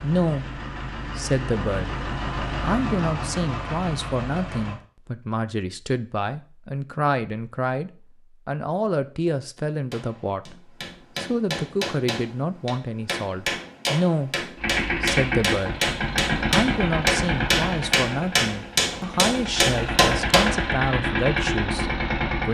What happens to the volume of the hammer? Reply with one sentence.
The loudness of the hammer goes up.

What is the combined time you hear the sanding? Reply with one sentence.
The sanding can't be heard in this clip.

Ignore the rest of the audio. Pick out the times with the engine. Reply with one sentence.
You can hear the engine from 0.0 to 4.8 s and from 14.6 to 22.5 s.